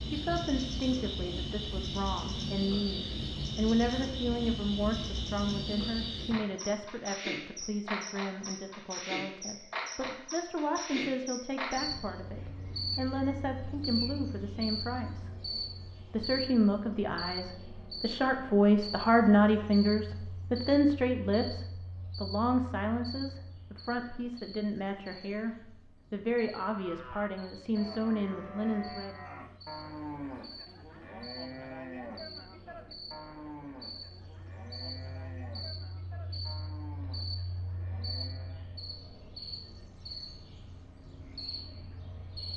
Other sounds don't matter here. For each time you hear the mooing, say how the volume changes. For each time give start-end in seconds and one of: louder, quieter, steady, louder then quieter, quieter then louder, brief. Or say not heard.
26.6-38.9 quieter.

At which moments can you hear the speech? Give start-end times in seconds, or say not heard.
0.0-15.3, 16.1-29.2.